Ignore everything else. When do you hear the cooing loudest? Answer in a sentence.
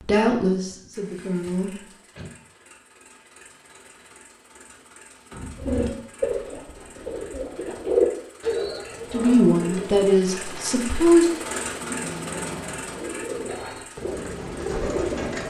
The volume of the cooing peaks at 8 seconds.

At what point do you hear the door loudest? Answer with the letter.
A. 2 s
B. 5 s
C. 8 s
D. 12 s
D.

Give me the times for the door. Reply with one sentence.
The door can be heard from 1.4 to 2.4 s, from 5.3 to 5.8 s and from 11.5 to 13.0 s.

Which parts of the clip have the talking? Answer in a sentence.
You can hear the talking from 0.1 to 1.7 s and from 9.1 to 11.3 s.